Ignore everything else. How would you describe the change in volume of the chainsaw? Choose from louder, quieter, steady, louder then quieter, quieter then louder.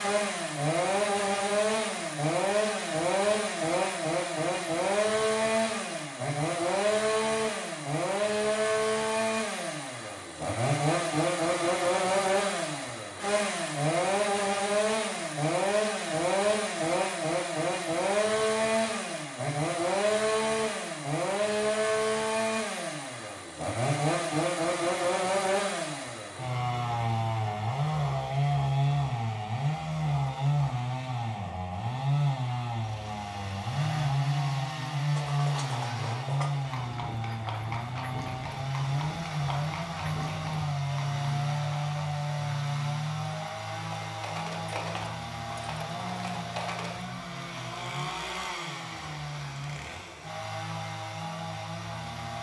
quieter.